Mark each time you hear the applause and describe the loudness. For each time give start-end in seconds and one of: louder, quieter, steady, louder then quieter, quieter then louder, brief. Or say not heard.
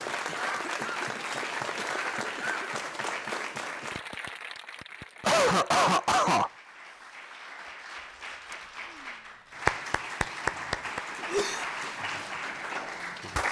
0.0-13.4 quieter then louder.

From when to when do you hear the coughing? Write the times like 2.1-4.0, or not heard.
0.2-2.7, 5.2-6.5, 10.5-11.7.